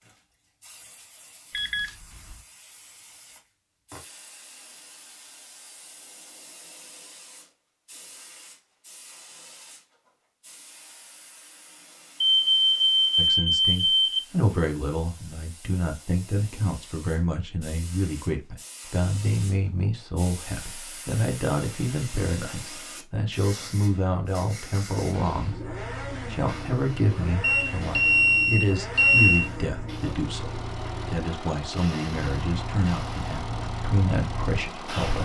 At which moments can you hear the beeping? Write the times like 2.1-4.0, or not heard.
1.5-2.4, 12.2-14.2, 27.4-29.5.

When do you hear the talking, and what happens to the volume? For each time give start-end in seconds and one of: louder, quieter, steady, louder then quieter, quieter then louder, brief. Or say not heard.
13.2-35.2 steady.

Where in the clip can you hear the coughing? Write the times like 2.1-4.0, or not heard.
not heard.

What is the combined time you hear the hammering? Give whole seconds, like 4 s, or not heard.
not heard.